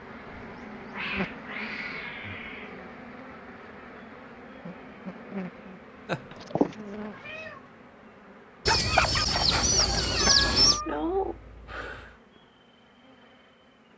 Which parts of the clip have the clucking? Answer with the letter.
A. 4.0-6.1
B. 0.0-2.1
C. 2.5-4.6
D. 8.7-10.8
D.